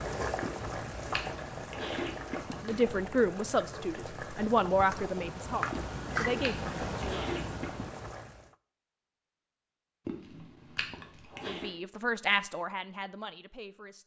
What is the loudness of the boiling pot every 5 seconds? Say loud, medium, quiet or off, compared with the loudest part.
loud, loud, off.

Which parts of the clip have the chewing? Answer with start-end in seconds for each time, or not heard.
0.4-2.9, 5.7-7.9, 10.1-11.8.